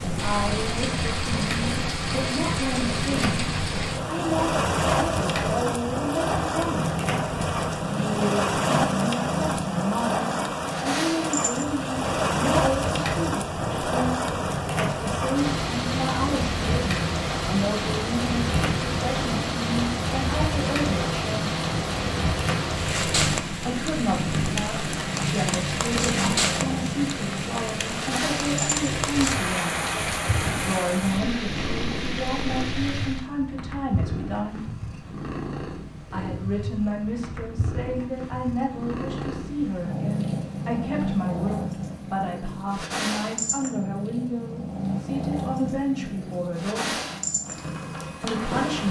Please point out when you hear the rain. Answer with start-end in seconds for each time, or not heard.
0.0-33.2.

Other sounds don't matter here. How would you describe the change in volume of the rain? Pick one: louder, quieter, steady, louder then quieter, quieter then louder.
steady.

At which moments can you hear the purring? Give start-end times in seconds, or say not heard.
0.0-48.8.